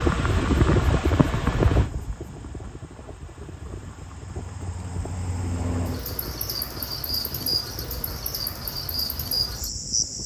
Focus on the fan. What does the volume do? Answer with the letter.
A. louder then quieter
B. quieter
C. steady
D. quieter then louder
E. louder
B.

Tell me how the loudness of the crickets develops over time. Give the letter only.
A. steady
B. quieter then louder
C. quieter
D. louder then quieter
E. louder
B.